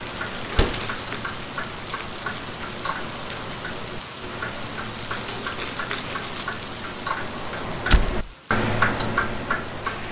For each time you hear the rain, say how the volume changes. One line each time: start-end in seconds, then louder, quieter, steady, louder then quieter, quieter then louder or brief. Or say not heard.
0.0-10.0 quieter.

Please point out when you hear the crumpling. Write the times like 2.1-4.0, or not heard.
0.3-1.2, 5.1-6.5.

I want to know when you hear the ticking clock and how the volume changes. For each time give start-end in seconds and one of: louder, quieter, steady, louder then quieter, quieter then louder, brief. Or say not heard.
0.0-10.0 louder.